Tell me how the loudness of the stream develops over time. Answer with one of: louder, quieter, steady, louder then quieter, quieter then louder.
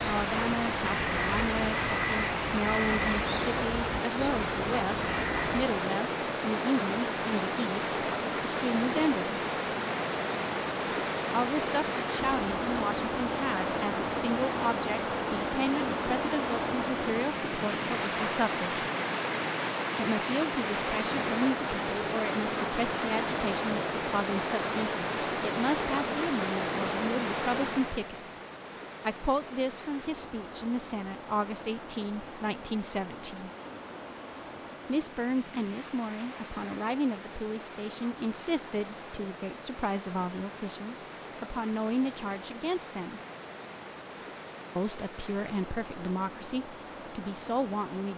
quieter.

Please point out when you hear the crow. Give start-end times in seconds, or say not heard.
0.0-5.7.